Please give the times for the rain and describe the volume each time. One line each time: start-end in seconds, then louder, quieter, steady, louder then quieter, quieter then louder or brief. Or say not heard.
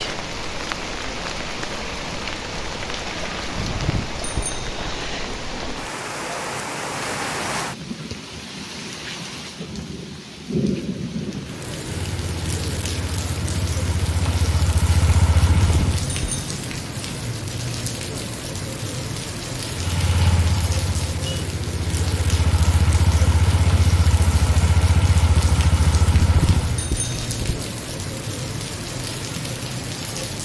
0.0-30.4 steady.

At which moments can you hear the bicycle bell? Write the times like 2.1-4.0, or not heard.
3.5-4.9, 15.6-16.5, 26.1-27.6.